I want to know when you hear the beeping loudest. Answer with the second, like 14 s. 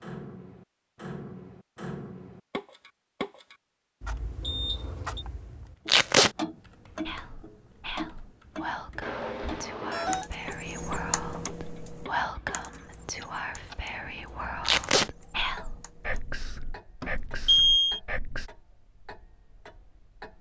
18 s.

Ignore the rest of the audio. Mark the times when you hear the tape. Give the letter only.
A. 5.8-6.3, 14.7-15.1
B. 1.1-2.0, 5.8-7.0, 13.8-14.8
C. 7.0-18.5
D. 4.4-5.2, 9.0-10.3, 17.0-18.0
A.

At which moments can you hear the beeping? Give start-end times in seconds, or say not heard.
4.4-5.2, 9.0-10.3, 17.0-18.0.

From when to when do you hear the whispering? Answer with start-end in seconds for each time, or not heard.
7.0-18.5.